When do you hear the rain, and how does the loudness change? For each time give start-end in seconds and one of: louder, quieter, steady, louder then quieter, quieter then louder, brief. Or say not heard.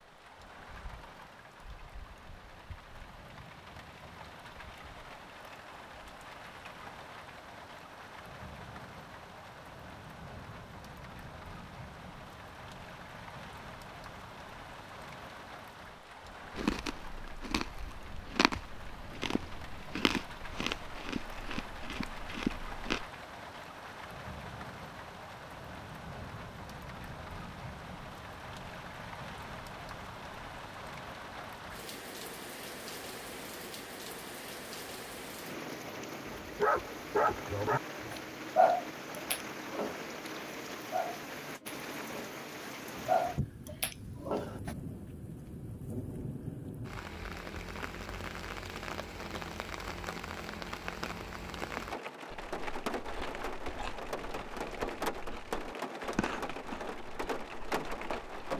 0.0-58.5 louder.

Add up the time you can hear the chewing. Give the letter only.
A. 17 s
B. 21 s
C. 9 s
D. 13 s
D.